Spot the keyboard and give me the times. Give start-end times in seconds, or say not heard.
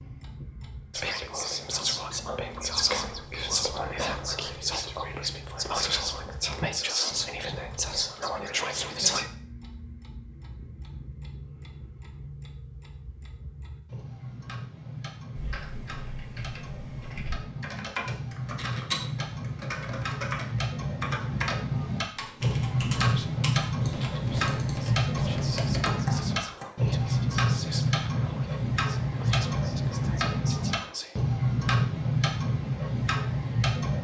15.3-26.6.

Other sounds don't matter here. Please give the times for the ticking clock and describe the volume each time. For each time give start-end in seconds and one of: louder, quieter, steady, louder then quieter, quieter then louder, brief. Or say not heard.
0.0-33.9 louder.